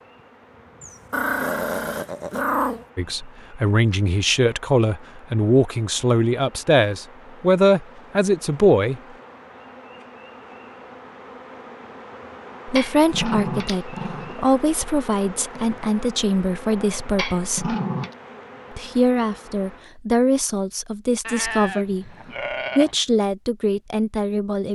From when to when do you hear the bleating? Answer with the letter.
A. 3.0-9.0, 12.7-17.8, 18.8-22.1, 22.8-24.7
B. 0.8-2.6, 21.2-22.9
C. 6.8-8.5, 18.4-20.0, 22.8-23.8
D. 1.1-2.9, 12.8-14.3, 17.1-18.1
B.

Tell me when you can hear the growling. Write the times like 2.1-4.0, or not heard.
1.1-2.9, 12.8-14.3, 17.1-18.1.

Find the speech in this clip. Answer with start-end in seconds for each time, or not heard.
3.0-9.0, 12.7-17.8, 18.8-22.1, 22.8-24.7.